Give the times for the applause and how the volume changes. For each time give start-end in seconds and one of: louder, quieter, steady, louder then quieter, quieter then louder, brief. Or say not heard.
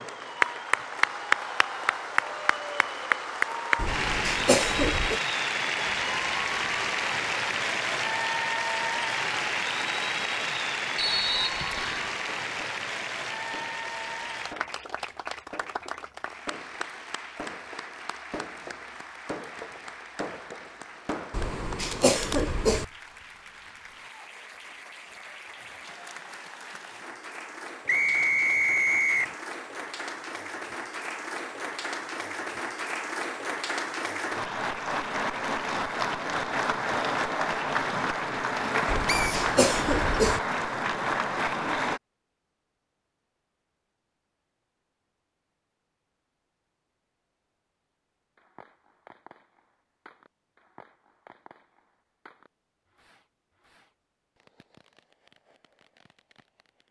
0.0-42.0 quieter then louder.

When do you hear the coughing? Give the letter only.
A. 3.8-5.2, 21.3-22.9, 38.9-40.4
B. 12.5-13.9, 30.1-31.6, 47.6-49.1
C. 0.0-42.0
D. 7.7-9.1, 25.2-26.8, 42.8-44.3
A.